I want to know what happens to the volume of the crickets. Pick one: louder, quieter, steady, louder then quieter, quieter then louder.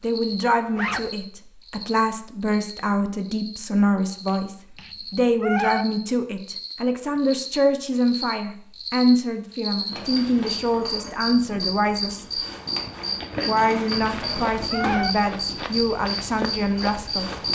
louder.